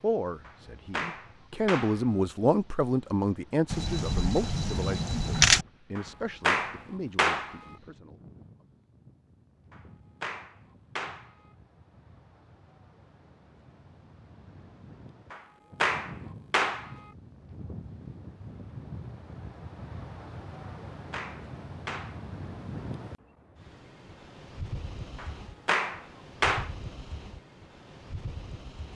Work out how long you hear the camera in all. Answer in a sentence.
You can hear the camera for 2 seconds altogether.